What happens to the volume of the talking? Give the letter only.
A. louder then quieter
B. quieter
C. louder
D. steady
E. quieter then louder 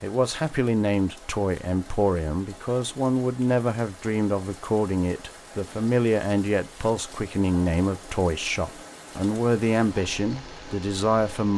D.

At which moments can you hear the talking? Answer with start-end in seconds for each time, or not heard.
0.0-11.5.